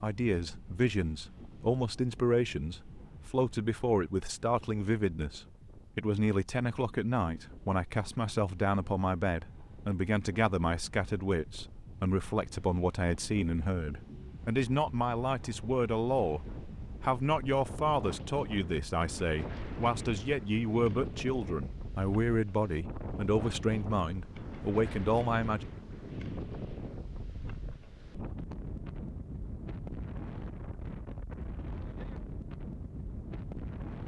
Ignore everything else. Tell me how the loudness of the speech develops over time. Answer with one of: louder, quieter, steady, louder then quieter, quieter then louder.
steady.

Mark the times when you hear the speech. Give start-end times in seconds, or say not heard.
0.0-25.6.